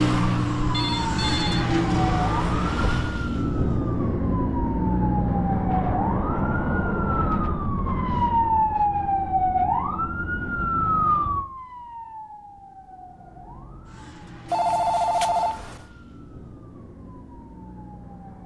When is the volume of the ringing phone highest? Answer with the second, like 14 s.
15 s.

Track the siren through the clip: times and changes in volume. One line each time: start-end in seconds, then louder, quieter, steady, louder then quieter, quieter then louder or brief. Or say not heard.
0.0-18.4 quieter.